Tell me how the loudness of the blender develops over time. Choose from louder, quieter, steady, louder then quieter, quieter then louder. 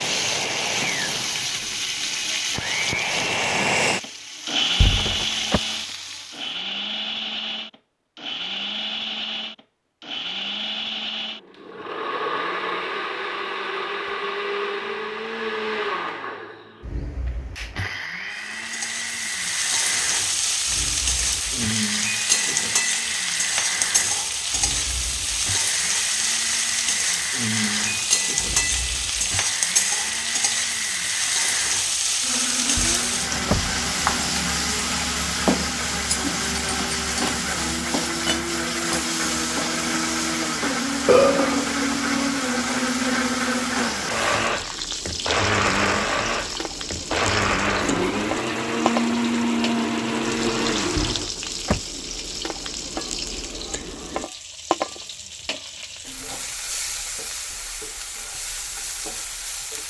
quieter then louder.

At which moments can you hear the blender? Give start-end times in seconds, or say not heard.
0.0-51.3.